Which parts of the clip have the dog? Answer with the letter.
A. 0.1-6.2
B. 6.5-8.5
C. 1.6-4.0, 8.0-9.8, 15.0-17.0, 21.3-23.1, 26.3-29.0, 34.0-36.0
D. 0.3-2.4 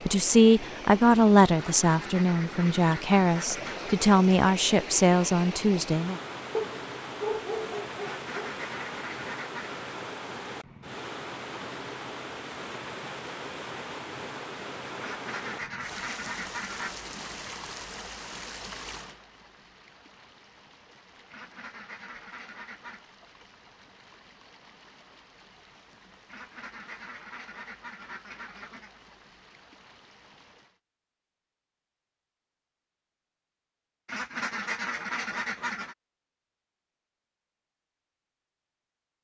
B.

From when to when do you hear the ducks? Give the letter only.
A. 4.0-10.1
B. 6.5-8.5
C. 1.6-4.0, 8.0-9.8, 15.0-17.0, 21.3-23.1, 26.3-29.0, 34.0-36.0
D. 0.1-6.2
C.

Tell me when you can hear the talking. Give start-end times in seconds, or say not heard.
0.1-6.2.